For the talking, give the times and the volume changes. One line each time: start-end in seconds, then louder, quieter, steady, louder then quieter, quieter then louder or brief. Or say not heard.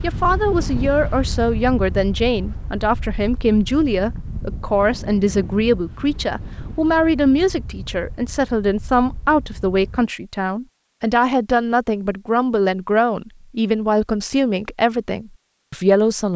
0.0-16.3 steady.